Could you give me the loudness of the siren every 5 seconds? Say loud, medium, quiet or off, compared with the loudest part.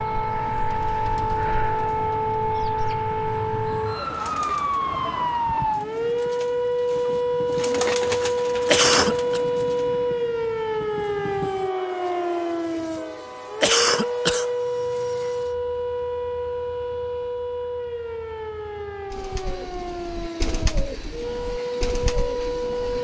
loud, loud, loud, medium, medium.